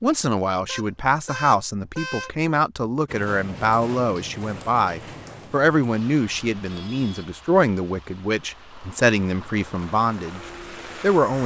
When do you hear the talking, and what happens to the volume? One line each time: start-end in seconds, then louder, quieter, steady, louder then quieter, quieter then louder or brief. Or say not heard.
0.0-10.4 steady
11.0-11.4 brief.